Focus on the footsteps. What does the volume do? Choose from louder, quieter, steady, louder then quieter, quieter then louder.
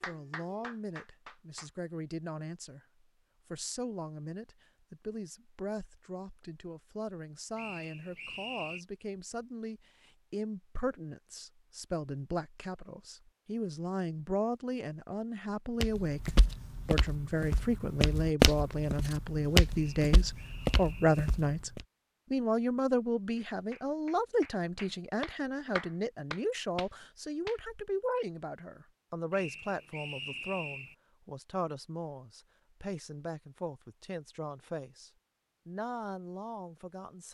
louder then quieter.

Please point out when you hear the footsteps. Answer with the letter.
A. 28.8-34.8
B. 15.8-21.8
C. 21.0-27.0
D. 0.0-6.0
B.